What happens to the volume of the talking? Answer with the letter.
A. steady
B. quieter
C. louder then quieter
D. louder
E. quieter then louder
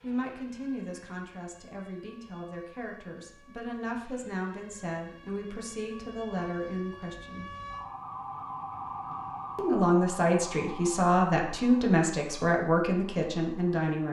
D.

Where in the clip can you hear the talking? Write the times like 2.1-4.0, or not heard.
0.0-7.5, 9.6-14.0.